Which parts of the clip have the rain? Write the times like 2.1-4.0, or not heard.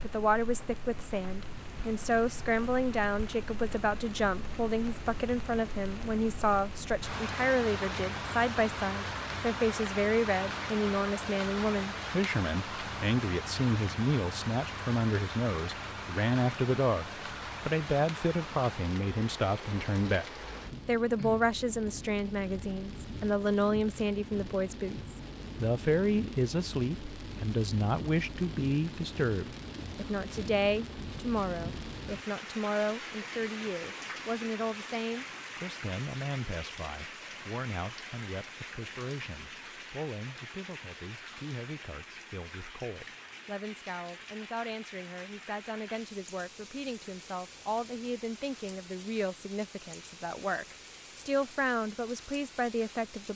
0.0-53.3.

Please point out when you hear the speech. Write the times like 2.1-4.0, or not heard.
0.0-53.3.